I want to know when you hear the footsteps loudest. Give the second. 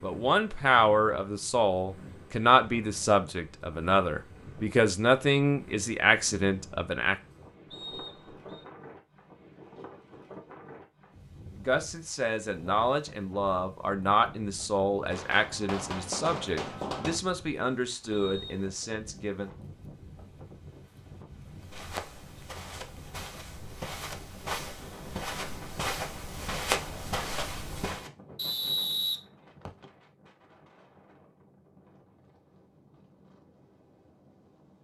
27 s.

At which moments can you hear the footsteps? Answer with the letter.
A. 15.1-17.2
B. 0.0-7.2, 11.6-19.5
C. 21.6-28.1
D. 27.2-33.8
C.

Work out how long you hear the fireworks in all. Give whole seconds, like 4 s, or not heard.
2 s.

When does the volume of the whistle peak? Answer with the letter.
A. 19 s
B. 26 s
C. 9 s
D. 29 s
D.